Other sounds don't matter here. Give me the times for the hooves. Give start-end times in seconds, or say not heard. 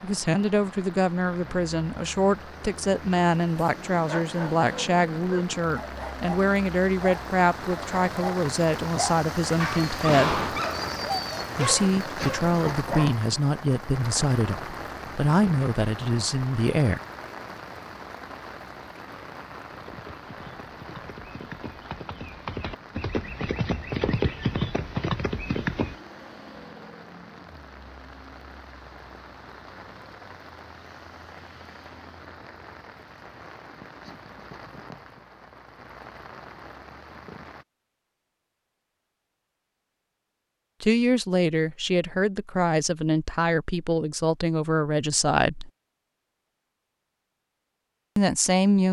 19.6-25.9.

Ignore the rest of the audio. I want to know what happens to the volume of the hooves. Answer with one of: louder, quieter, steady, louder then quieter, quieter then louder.
louder.